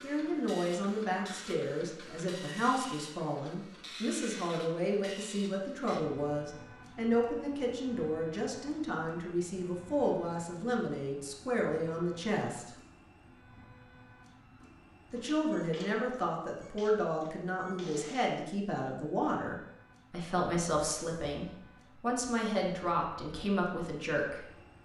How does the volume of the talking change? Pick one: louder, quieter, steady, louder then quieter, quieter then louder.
steady.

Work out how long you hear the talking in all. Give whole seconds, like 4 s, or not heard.
22 s.